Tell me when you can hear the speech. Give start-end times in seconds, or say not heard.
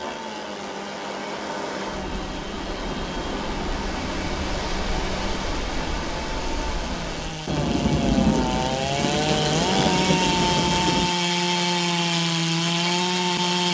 not heard.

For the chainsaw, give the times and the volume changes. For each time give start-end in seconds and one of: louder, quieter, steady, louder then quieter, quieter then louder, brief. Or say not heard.
0.0-13.6 louder.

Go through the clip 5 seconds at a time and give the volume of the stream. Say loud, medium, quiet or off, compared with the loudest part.
loud, loud, off.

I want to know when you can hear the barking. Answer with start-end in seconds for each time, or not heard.
not heard.